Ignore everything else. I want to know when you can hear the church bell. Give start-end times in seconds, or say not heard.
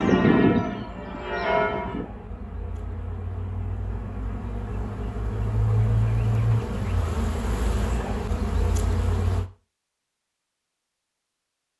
0.0-2.0.